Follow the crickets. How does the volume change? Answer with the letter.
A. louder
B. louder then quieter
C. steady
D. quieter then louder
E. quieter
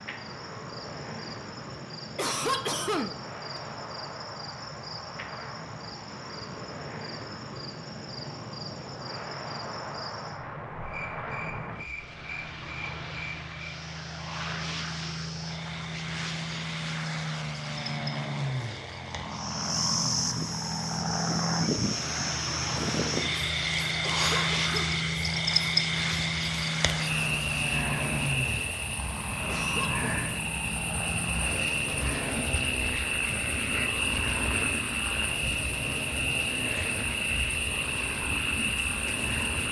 A.